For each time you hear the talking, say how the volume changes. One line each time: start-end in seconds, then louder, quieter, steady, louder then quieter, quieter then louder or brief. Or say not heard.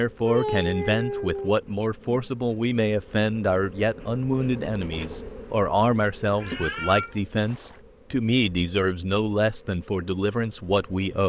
0.0-11.2 steady.